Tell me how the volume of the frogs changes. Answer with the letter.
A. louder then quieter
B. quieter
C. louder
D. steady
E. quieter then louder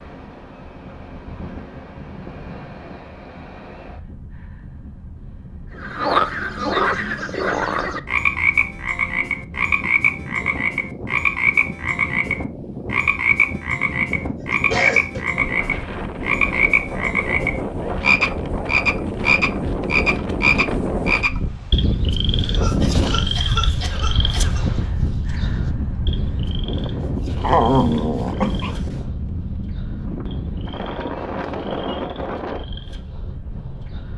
B.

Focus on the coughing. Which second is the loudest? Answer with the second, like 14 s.
15 s.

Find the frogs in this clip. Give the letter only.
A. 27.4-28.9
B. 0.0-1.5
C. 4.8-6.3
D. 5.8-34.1
D.